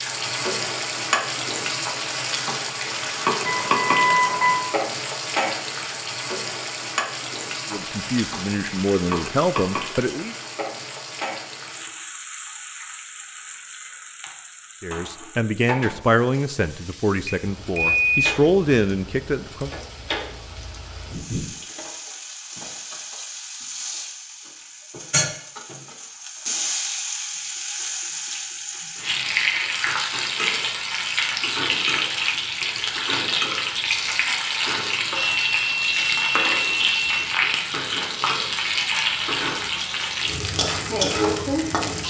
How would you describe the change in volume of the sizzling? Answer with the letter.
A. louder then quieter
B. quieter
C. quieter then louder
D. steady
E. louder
C.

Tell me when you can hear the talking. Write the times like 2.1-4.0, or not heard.
7.7-10.3, 14.8-19.7.